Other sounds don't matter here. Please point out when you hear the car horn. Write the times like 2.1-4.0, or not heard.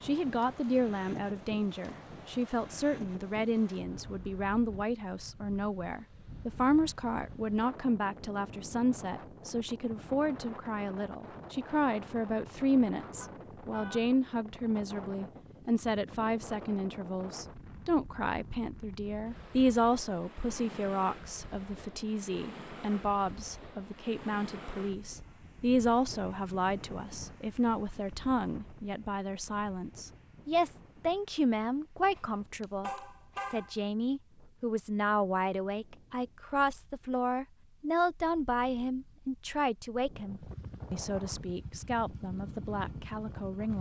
13.2-14.2, 32.1-33.8.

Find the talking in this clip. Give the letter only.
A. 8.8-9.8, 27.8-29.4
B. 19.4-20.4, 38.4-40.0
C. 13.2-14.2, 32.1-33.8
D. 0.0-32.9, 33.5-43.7
D.